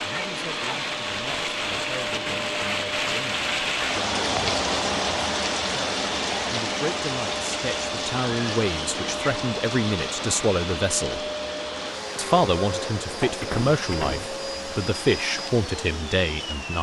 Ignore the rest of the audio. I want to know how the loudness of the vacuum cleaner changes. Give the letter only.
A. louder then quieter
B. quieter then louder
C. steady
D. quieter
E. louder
C.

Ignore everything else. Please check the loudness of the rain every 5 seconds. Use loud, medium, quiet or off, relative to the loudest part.
loud, loud, medium, quiet.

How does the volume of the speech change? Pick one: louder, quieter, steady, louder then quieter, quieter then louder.
louder.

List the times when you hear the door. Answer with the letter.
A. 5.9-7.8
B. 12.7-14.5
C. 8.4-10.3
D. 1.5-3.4
B.